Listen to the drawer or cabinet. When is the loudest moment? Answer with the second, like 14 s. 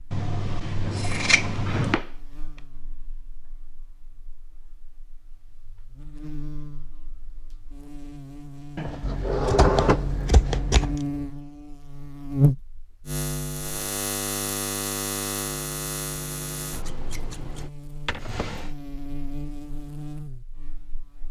10 s.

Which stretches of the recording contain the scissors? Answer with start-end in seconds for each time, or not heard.
0.1-2.0, 8.8-11.0, 16.7-17.7.